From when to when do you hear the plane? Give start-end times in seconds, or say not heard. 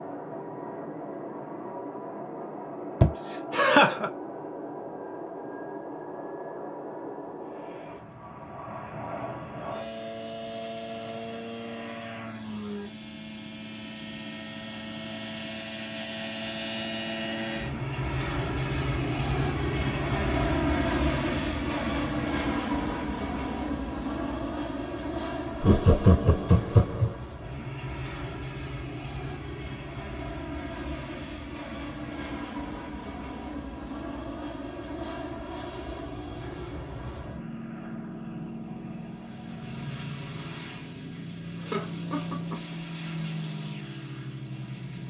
0.0-45.0.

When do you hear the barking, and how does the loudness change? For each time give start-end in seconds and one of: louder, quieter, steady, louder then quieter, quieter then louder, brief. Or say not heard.
not heard.